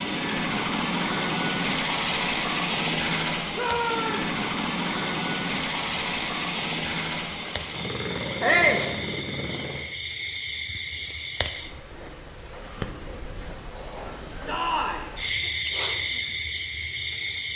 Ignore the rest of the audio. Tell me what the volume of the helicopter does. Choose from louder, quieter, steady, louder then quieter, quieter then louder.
quieter.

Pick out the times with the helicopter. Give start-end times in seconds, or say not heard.
0.0-9.8.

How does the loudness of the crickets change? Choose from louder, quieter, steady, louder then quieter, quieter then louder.
louder.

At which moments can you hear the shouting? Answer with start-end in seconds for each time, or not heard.
3.5-4.3, 8.4-8.8, 14.4-15.1.